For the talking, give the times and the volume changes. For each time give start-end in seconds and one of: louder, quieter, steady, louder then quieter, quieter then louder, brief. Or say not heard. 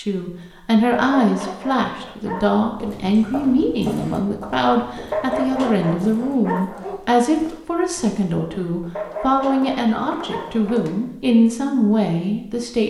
0.0-12.8 steady.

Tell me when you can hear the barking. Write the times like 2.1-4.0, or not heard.
0.9-2.6, 5.1-7.0, 8.9-10.8.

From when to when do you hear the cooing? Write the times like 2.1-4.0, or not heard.
not heard.